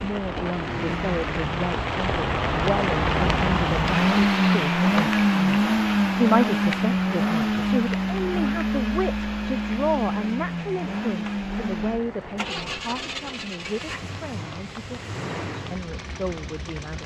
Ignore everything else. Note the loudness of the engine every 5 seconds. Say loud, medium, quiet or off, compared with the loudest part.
loud, loud, medium, quiet.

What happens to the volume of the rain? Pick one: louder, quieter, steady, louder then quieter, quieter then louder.
quieter.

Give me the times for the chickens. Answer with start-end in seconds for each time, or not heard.
not heard.